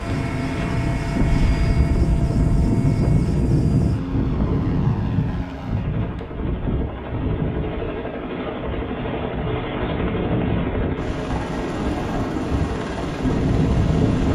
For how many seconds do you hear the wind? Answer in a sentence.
The wind can be heard for 14 seconds in total.